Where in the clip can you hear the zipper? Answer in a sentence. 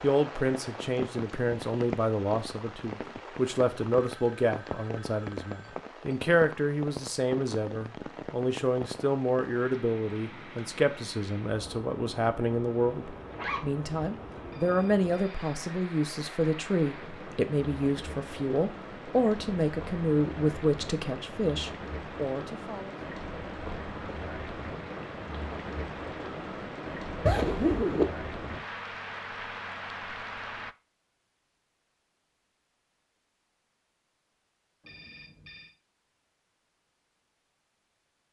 The zipper can be heard from 13.2 to 13.8 s and from 27.2 to 28.1 s.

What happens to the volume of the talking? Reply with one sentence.
The loudness of the talking stays about the same.